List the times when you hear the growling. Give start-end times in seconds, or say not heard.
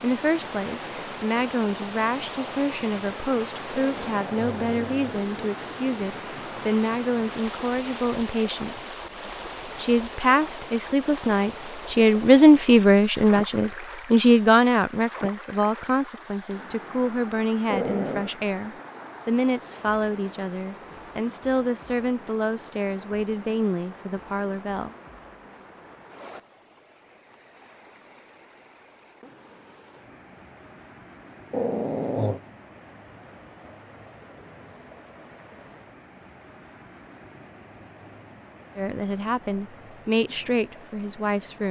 3.7-5.3, 17.6-18.3, 31.5-32.4.